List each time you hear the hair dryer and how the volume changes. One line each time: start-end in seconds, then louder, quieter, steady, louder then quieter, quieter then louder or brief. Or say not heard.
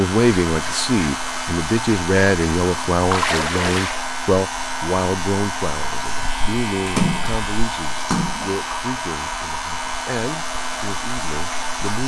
0.0-12.0 steady.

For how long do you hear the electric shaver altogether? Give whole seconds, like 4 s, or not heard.
12 s.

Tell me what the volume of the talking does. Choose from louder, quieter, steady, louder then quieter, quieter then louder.
quieter.